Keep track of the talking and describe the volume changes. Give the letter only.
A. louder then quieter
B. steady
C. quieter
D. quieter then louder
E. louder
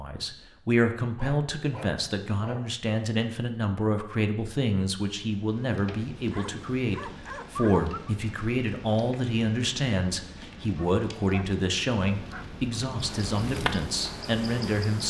B.